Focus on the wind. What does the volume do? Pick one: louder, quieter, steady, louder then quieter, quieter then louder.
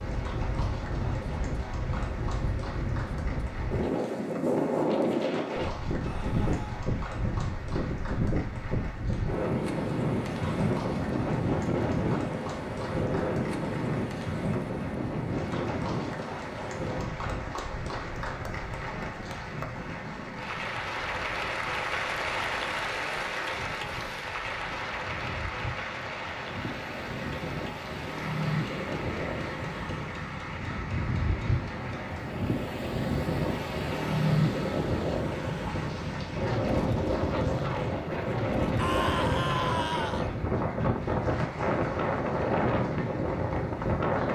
quieter then louder.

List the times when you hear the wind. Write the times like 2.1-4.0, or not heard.
0.0-44.3.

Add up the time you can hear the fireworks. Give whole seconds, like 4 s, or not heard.
not heard.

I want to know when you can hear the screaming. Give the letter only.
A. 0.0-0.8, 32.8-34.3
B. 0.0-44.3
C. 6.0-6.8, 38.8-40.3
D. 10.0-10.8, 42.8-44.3
C.